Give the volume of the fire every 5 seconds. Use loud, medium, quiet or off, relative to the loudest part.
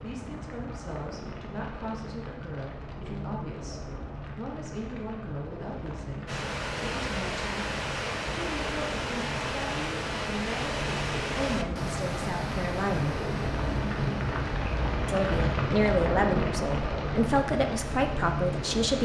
medium, medium, loud, loud.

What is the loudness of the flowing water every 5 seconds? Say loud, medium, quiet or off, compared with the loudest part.
off, loud, loud, medium.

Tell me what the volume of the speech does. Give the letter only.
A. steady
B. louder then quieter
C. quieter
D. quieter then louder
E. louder
E.